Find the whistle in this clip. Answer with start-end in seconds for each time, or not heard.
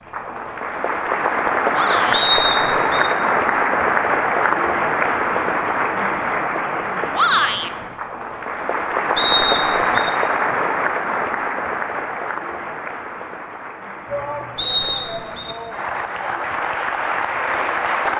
2.1-3.1, 9.2-10.1, 14.6-15.6.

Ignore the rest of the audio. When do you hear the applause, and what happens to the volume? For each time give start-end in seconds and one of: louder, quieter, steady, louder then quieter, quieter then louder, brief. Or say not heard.
0.1-18.1 quieter.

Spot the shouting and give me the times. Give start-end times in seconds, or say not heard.
1.7-2.3, 7.1-7.7, 14.1-16.6.